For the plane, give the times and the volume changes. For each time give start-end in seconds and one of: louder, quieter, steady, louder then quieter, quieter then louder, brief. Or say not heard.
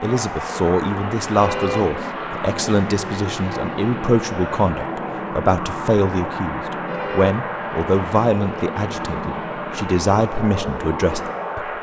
0.0-11.7 steady.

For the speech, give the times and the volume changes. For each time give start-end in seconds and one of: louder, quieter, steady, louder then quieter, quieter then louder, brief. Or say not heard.
0.0-11.7 steady.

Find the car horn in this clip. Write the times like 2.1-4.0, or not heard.
1.4-1.9, 6.8-7.4.